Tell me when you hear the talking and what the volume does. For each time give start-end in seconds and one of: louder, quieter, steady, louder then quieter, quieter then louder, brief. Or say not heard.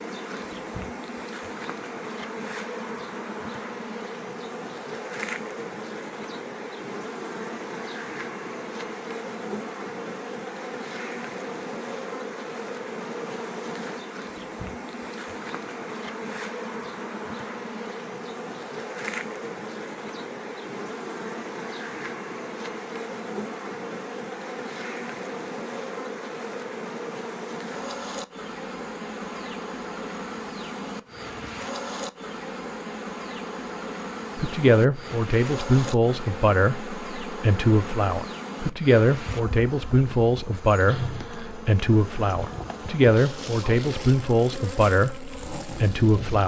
34.4-46.4 steady.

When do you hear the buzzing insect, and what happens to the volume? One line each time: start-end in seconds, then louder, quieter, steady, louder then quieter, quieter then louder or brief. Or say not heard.
0.0-46.4 steady.